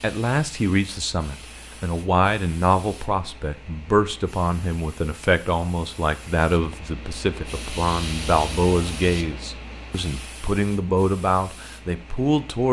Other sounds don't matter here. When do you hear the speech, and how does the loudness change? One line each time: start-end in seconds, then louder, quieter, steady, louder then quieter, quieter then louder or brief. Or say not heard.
0.0-12.6 steady.